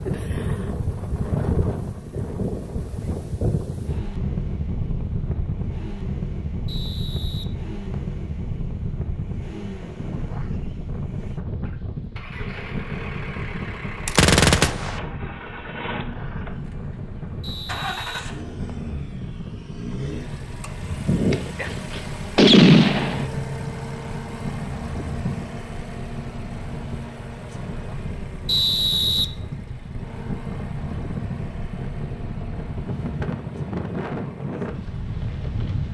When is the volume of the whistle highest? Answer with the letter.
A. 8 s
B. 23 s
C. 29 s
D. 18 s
C.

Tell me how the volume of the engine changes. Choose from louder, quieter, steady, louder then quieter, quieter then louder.
louder then quieter.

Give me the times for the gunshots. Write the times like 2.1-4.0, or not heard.
14.1-15.0, 21.3-23.2.